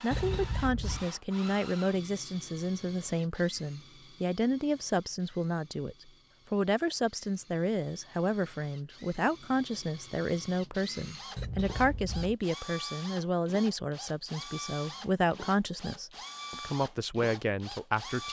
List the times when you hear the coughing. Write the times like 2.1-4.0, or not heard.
0.1-1.1, 11.3-12.3.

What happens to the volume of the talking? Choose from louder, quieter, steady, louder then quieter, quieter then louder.
steady.